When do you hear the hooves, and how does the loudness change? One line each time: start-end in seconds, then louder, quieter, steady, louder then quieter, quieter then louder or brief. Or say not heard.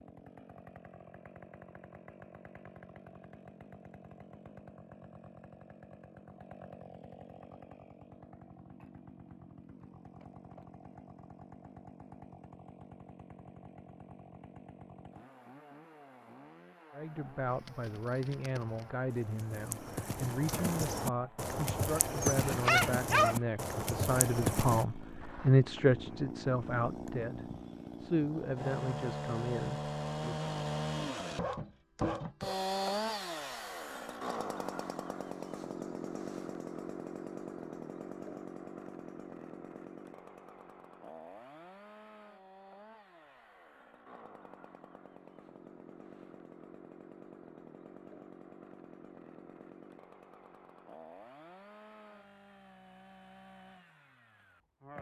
17.4-24.9 louder.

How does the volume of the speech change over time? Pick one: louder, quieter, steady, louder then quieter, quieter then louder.
louder then quieter.